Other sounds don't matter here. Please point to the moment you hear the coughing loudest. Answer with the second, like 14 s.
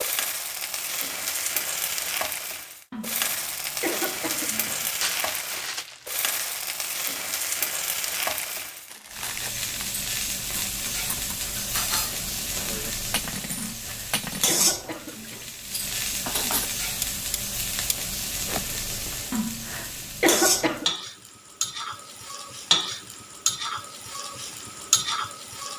20 s.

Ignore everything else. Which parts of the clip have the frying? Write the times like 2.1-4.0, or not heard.
0.0-25.7.